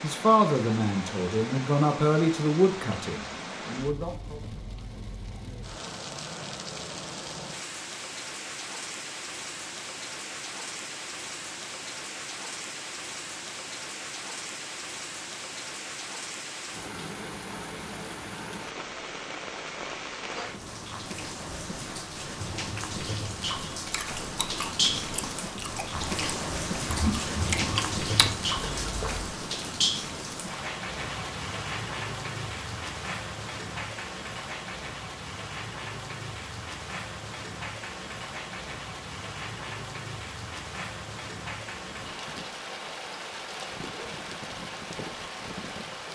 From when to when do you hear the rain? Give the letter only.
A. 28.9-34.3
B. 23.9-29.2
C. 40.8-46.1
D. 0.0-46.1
D.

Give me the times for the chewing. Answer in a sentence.
The chewing can be heard from 23.9 to 29.2 s.